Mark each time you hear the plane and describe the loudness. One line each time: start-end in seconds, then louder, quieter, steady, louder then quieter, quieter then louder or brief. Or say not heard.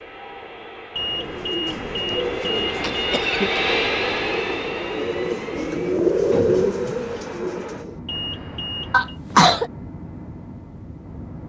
0.0-11.4 louder then quieter.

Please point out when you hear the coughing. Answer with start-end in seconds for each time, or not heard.
2.8-3.6, 8.9-9.7.